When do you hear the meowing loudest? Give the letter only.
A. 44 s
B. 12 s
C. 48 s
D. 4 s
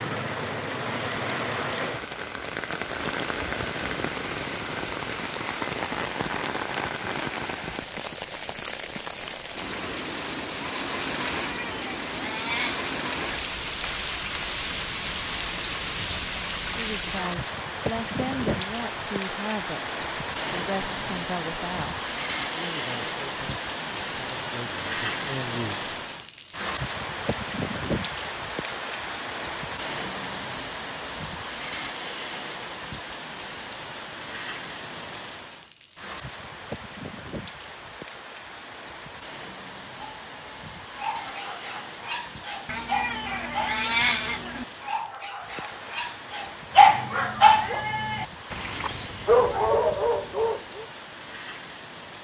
A.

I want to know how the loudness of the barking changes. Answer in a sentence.
The volume of the barking goes up.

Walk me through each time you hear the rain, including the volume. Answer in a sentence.
The rain can be heard from 0.0 to 52.1 s, getting quieter.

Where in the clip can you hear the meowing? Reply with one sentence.
The meowing can be heard from 11.4 to 12.9 s and from 42.6 to 44.6 s.